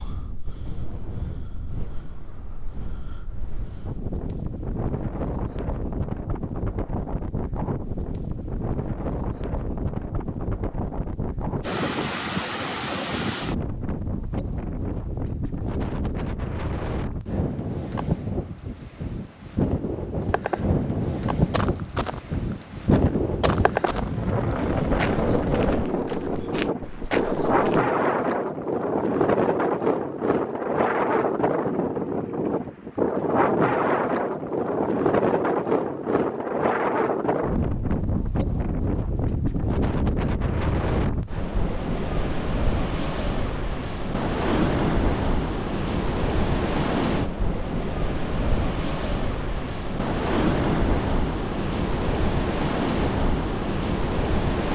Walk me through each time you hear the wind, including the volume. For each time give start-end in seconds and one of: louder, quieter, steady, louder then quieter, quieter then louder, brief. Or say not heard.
0.0-54.7 louder.